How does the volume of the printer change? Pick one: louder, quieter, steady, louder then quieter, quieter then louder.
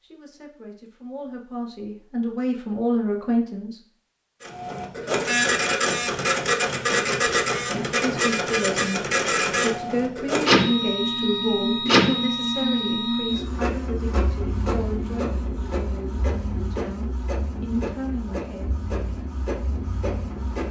quieter.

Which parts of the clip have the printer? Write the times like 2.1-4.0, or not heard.
4.4-20.6.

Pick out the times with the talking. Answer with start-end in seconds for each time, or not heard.
0.0-3.8, 7.8-18.8.